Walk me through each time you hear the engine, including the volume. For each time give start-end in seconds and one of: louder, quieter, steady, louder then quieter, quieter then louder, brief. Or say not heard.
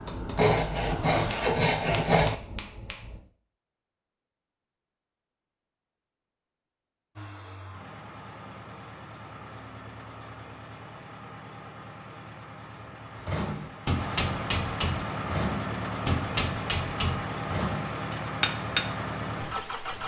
0.0-1.6 brief
7.2-20.0 louder.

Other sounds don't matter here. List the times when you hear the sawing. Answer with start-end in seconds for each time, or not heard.
0.3-2.4.